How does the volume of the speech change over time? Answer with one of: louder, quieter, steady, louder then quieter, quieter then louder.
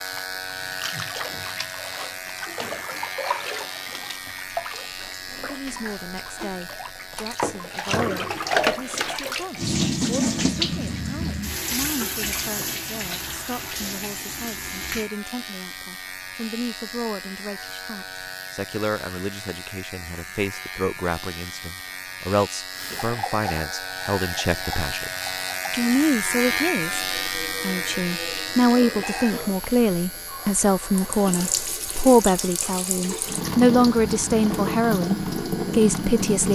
louder.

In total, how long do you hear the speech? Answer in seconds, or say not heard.
31 s.